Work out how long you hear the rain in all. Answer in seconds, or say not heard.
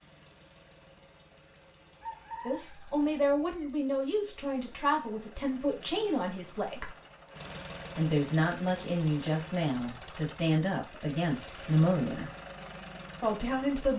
not heard.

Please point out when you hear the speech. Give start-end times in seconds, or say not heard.
2.5-6.9, 8.0-12.3, 13.2-13.9.